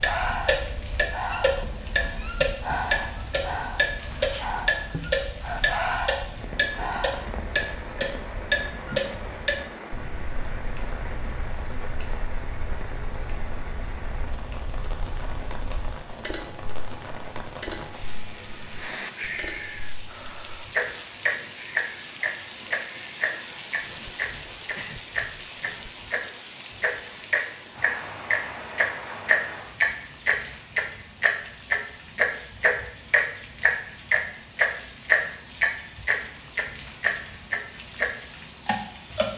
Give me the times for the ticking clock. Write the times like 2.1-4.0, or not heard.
0.0-39.3.